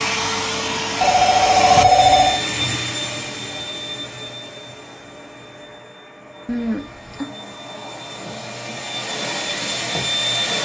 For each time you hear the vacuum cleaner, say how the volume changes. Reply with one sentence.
The vacuum cleaner can be heard from 0.0 to 10.6 s, getting quieter then louder.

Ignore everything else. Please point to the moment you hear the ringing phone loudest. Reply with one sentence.
The volume of the ringing phone peaks at 2 seconds.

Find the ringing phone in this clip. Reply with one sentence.
The ringing phone can be heard from 1.0 to 2.4 s and from 6.5 to 7.3 s.